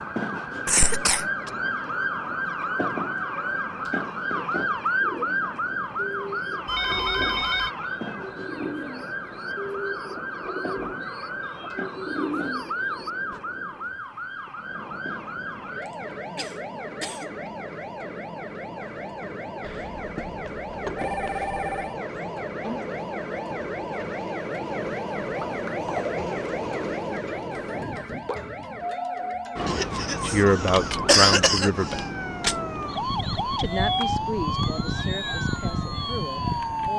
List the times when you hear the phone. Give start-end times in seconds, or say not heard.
6.7-7.7, 19.6-21.9.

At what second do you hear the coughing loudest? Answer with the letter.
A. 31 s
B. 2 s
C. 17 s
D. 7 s
A.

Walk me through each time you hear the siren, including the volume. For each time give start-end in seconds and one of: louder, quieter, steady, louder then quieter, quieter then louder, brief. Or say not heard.
0.0-36.9 quieter then louder.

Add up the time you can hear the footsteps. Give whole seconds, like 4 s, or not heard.
not heard.